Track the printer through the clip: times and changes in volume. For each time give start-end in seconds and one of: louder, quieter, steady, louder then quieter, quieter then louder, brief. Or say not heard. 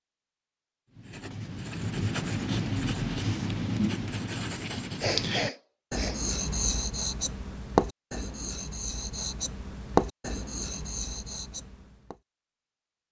not heard.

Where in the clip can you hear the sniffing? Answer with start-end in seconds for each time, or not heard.
5.0-6.3.